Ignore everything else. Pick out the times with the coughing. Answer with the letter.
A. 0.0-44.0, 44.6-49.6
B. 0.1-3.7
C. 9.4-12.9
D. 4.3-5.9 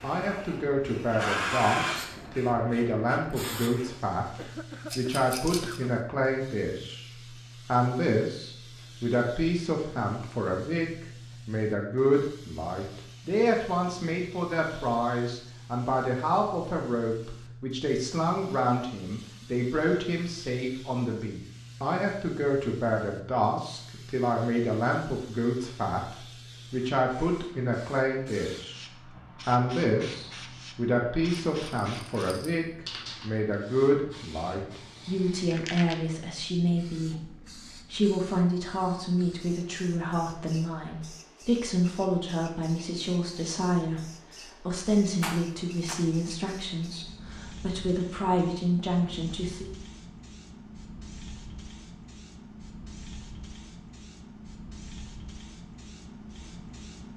D.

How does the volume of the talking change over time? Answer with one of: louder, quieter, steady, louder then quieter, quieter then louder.
steady.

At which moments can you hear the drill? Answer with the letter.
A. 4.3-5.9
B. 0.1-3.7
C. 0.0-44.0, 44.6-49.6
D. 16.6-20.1
B.